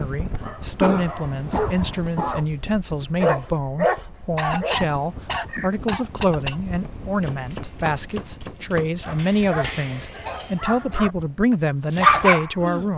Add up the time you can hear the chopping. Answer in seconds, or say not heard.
2 s.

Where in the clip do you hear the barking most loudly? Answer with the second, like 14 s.
12 s.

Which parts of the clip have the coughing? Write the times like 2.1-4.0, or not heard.
0.8-2.5, 4.3-6.5, 9.8-11.1.